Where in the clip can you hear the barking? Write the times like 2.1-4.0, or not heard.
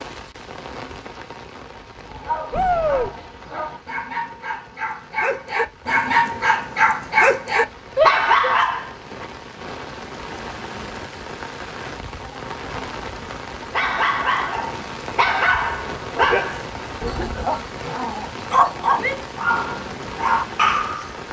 1.9-9.2, 13.7-21.2.